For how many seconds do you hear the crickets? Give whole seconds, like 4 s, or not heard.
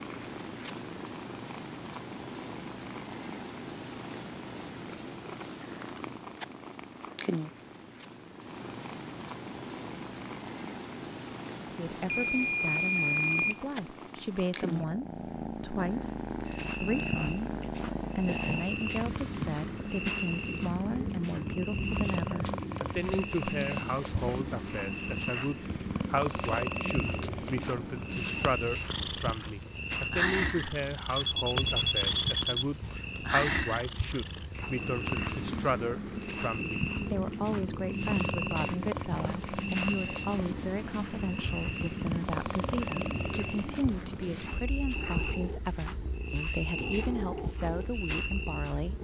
33 s.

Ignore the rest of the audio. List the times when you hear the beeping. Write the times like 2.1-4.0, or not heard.
11.7-13.6, 31.1-32.6.